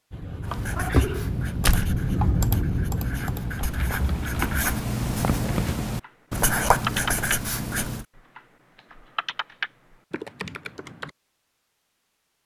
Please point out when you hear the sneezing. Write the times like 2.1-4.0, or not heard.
0.8-1.4.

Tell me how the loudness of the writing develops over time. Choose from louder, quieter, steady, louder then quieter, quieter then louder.
louder.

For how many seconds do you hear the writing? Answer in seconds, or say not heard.
8 s.